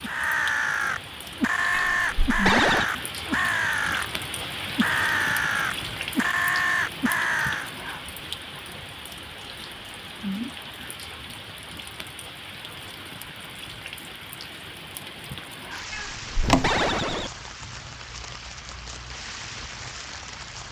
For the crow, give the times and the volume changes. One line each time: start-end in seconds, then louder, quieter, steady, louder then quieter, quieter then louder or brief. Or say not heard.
0.0-4.0 steady
4.8-7.7 brief.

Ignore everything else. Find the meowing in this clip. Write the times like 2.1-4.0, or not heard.
1.7-2.9, 15.9-17.3.